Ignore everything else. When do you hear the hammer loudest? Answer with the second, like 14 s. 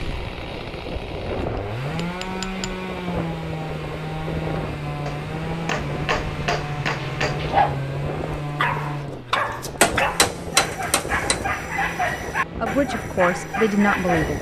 10 s.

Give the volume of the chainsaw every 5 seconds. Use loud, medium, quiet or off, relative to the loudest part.
loud, loud, medium.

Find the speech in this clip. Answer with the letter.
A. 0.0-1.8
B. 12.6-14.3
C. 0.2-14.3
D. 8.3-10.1
B.